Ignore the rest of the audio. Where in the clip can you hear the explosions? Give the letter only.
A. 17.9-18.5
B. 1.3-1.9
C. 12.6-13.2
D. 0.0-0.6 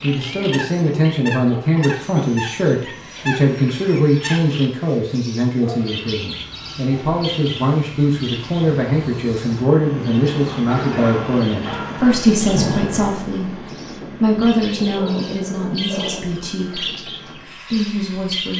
C.